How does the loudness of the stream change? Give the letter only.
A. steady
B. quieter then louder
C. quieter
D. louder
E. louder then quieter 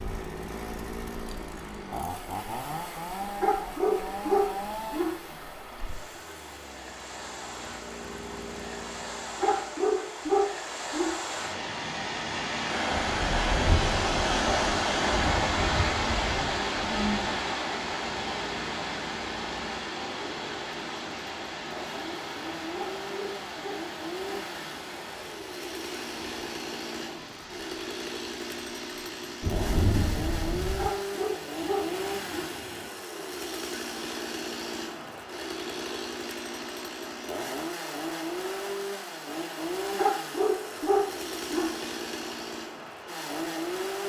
E.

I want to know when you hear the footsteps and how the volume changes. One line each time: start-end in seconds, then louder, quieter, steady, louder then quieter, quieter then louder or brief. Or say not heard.
not heard.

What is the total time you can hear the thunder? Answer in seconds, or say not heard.
6 s.